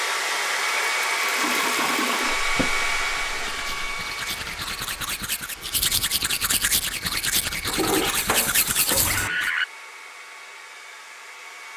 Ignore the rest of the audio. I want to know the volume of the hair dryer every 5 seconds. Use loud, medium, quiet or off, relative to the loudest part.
loud, quiet, quiet.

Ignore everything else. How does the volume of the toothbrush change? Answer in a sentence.
The volume of the toothbrush goes up.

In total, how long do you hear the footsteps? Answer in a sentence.
The footsteps can't be heard in this clip.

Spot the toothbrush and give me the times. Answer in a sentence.
The toothbrush can be heard from 1.6 to 9.5 s.